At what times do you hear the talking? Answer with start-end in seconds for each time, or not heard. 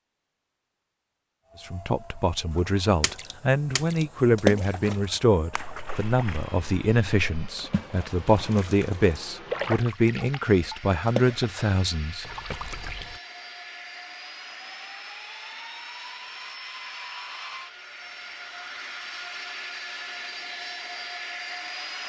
1.6-12.2.